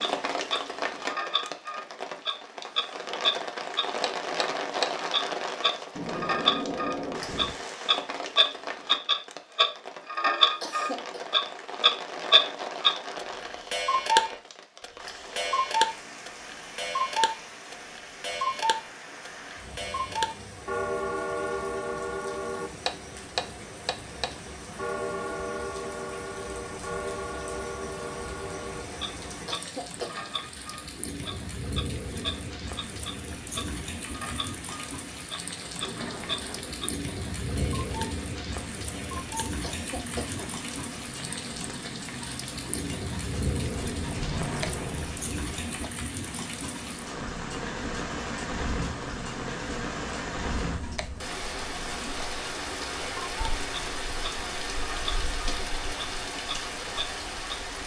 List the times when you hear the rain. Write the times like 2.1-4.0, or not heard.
0.0-57.8.